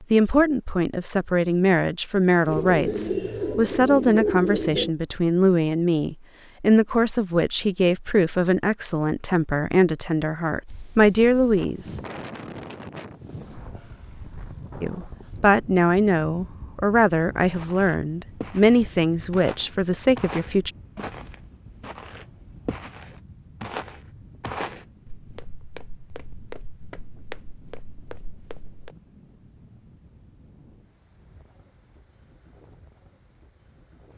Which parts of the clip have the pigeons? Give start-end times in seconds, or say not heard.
2.5-5.0.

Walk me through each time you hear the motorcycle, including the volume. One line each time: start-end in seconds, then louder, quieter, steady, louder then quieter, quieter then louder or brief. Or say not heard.
not heard.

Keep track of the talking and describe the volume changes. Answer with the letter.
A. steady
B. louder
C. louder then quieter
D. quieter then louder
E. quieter
A.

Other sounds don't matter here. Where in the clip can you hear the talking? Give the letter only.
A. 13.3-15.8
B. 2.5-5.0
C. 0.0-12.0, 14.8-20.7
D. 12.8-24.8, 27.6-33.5
C.